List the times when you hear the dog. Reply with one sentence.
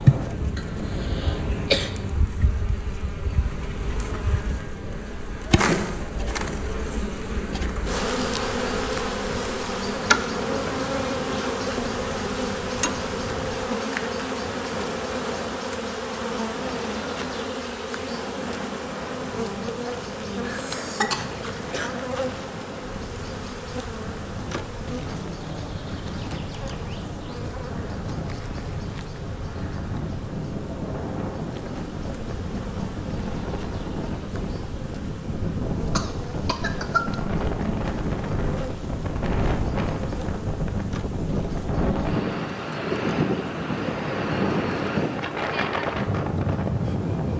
The dog can't be heard in this clip.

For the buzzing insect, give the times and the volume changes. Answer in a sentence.
The buzzing insect can be heard from 0.0 to 47.3 s, getting quieter.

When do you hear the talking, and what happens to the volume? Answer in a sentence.
You can't hear the talking here.